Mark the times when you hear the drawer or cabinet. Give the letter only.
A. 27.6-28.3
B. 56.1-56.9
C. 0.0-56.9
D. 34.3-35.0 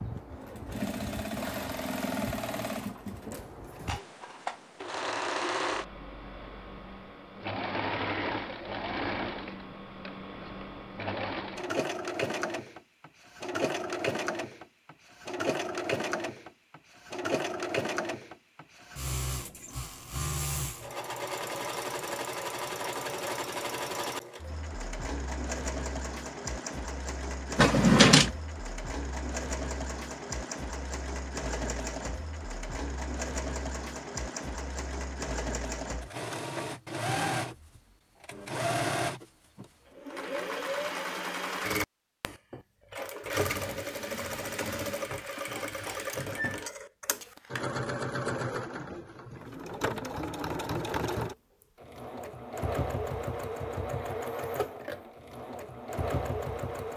A.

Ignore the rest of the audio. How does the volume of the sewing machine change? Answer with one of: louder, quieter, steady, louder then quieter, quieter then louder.
steady.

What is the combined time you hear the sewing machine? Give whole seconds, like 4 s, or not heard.
57 s.